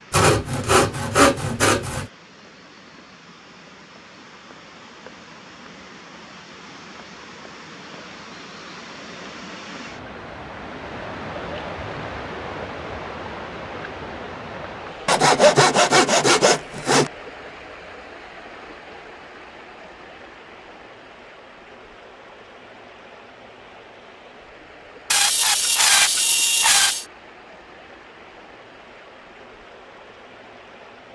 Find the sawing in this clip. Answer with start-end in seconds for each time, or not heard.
0.1-2.0, 15.1-17.1, 25.1-27.1.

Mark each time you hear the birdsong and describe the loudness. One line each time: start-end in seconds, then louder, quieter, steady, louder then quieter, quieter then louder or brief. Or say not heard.
not heard.